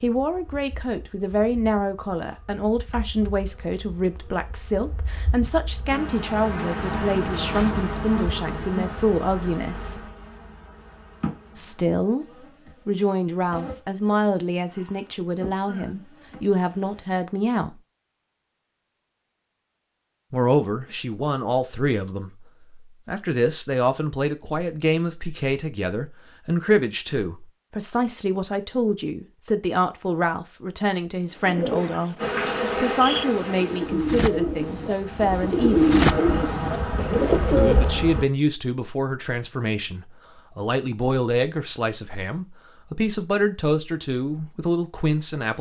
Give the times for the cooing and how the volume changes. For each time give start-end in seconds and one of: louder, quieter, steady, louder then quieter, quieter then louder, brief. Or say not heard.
31.4-38.2 louder.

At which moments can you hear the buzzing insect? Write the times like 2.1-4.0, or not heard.
0.1-17.1, 32.1-38.2.